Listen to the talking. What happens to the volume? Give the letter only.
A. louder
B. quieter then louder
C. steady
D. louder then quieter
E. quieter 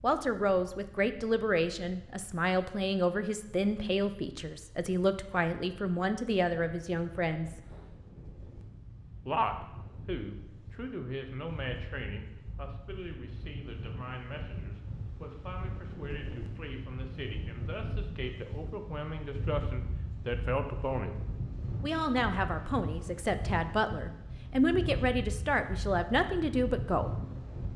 B.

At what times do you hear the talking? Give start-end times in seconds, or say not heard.
0.0-7.6, 9.2-21.1, 21.8-27.1.